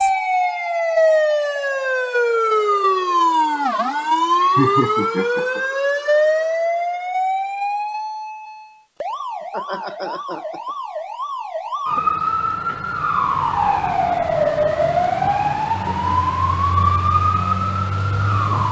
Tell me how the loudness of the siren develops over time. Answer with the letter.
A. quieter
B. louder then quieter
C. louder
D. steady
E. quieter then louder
E.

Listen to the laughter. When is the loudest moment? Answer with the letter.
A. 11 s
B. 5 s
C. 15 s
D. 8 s
B.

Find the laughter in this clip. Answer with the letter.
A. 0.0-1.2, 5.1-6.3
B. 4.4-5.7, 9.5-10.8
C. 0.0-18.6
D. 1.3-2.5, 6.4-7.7
B.